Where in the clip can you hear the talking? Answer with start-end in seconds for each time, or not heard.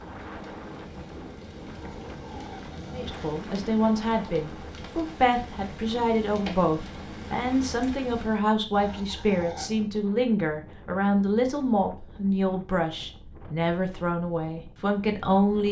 2.9-15.6.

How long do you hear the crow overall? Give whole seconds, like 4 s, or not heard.
not heard.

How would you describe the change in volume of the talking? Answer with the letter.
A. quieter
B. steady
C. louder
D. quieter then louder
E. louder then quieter
B.